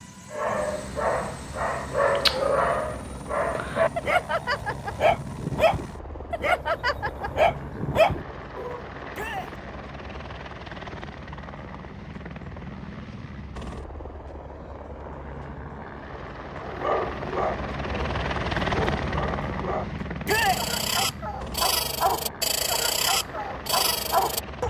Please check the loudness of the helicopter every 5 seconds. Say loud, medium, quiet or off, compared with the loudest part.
medium, medium, medium, loud, medium.